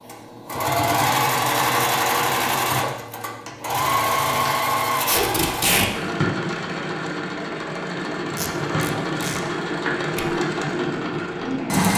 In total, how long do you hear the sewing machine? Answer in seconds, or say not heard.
12 s.